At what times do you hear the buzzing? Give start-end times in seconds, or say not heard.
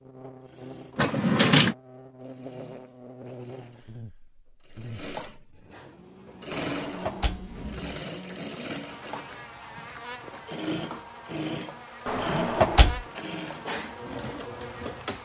0.0-15.2.